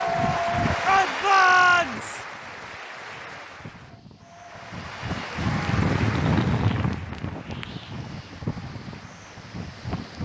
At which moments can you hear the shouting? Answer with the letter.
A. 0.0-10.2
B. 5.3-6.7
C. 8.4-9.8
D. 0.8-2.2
D.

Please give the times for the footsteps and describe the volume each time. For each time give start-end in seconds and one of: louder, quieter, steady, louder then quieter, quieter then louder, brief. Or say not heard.
not heard.